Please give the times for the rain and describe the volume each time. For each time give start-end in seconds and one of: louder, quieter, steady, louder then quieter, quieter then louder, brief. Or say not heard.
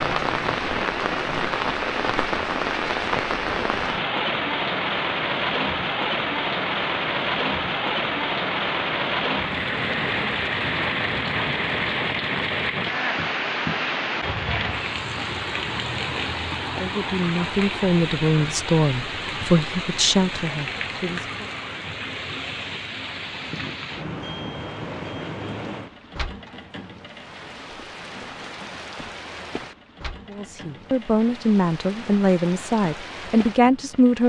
0.0-34.2 quieter.